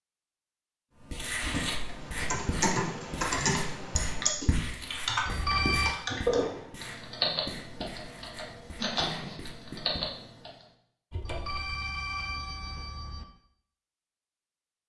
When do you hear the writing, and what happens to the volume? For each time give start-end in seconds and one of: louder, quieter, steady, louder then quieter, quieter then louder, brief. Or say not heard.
1.0-10.1 quieter.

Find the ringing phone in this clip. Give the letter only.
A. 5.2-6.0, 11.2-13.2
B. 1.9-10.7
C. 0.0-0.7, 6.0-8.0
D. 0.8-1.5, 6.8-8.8
A.